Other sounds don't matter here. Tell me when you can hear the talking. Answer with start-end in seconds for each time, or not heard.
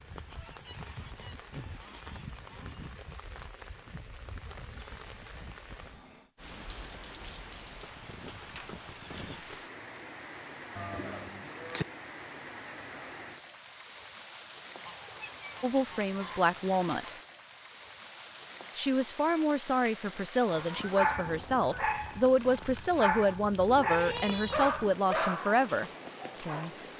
15.6-17.1, 18.8-26.7.